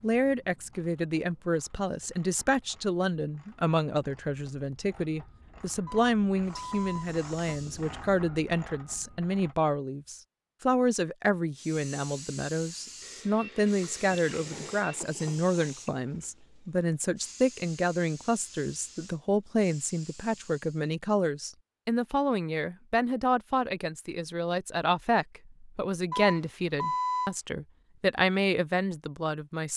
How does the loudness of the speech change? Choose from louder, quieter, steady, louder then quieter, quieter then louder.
steady.